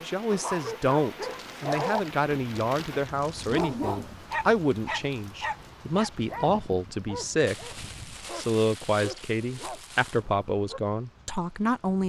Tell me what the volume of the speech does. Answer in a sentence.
The loudness of the speech stays about the same.